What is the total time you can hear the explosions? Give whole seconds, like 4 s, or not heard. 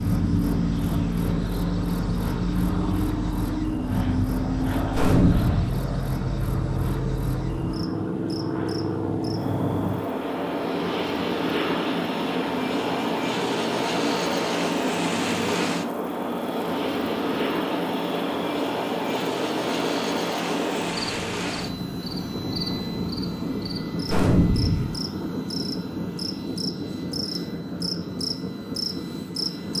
2 s.